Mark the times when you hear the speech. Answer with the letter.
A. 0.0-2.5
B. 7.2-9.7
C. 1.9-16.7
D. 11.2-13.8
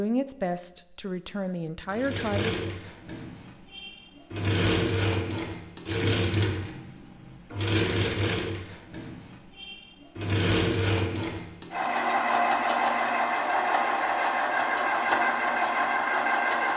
A.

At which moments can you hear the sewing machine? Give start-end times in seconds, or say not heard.
1.9-16.7.